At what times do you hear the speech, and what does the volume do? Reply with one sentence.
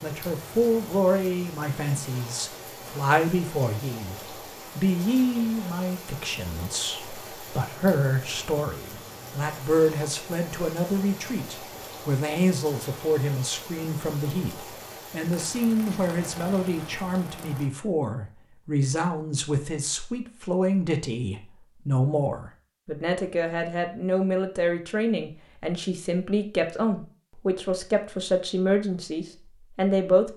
The speech can be heard from 0.0 to 30.3 s, at a steady volume.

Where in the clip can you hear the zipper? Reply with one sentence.
The zipper can't be heard in this clip.